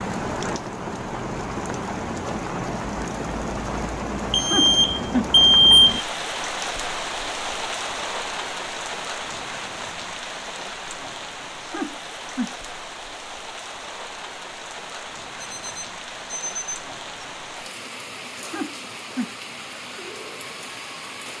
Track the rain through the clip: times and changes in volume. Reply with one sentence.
You can hear the rain from 0.0 to 21.3 s, getting quieter.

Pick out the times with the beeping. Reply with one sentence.
You can hear the beeping from 4.3 to 6.0 s and from 15.4 to 17.2 s.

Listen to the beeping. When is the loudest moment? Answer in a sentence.
The volume of the beeping peaks at 6 seconds.